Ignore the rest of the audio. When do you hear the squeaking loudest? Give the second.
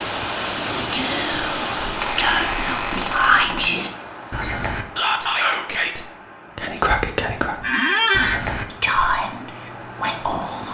8 s.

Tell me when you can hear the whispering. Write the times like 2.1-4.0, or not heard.
0.5-10.6.